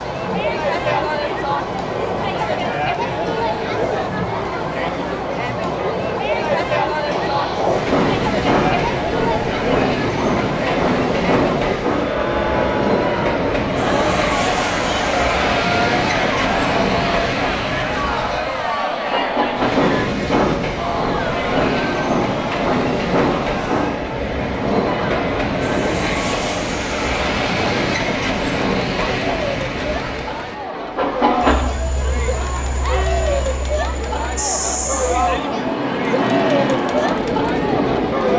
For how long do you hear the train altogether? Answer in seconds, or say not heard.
38 s.